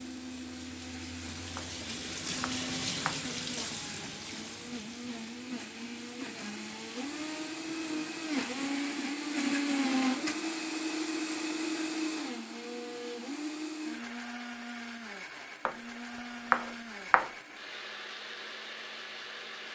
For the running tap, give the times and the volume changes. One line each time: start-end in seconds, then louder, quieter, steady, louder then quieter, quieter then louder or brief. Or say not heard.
0.0-8.7 louder then quieter.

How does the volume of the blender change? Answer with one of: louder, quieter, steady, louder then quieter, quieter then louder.
louder then quieter.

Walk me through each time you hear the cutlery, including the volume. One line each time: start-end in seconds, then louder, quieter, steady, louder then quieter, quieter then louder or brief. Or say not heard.
not heard.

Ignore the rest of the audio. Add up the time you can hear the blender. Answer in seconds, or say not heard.
20 s.